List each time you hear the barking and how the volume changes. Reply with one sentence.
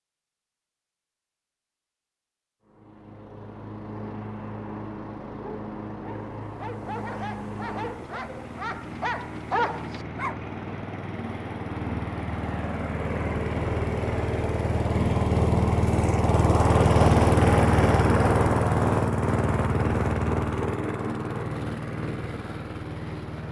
The barking can be heard from 5.3 to 10.4 s, getting louder.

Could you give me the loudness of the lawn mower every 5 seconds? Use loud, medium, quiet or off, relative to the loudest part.
quiet, quiet, medium, loud, medium.